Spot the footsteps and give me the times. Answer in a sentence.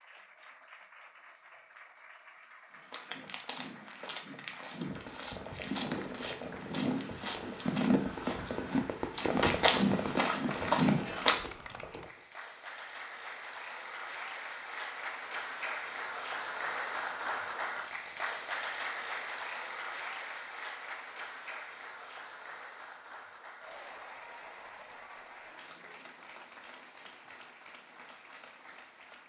You can hear the footsteps from 2.7 to 11.4 s.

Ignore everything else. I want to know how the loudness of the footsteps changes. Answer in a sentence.
The loudness of the footsteps goes up.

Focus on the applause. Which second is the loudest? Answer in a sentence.
The loudest moment of the applause is at 17 seconds.